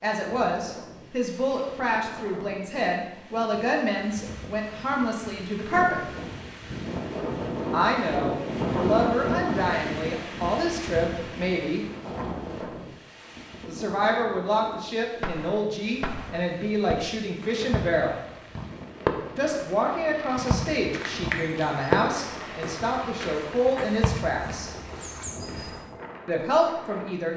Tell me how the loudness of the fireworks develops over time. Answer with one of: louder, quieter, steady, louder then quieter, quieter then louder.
louder then quieter.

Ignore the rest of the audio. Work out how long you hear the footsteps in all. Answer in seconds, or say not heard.
5 s.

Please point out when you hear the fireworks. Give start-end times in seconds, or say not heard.
15.2-24.6.